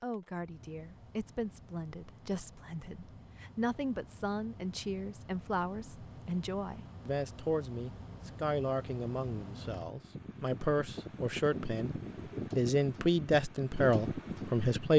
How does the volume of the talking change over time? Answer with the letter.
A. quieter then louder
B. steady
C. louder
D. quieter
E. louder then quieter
C.